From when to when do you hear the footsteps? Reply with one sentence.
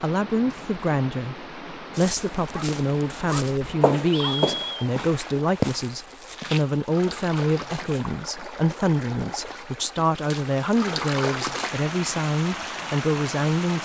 The footsteps can be heard from 1.9 to 8.2 s.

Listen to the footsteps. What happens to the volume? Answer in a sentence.
The loudness of the footsteps goes up, then down.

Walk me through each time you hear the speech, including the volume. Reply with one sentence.
You can hear the speech from 0.0 to 13.8 s, at a steady volume.